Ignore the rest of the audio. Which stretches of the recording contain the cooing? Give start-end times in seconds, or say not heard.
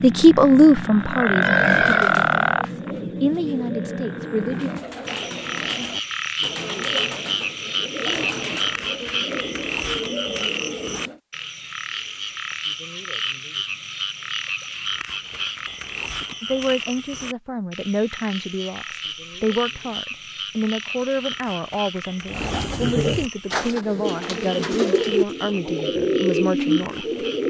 1.1-11.2, 22.2-27.4.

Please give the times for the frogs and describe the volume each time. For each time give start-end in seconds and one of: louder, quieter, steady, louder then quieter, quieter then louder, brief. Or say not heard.
0.0-27.4 quieter.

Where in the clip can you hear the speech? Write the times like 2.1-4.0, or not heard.
0.0-4.7, 16.4-27.1.